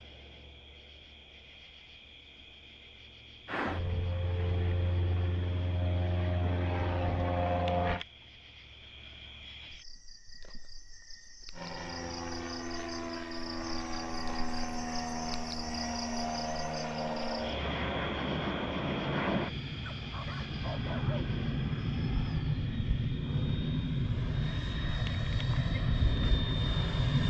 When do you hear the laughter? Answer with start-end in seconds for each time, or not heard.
not heard.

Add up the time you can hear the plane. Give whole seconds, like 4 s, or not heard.
20 s.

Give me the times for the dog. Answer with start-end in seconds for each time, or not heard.
19.9-21.4.